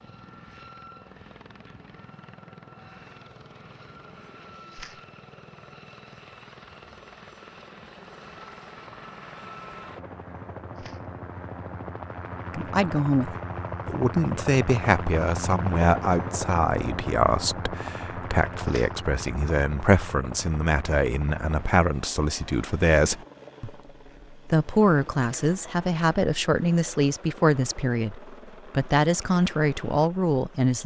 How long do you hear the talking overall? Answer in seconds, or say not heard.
18 s.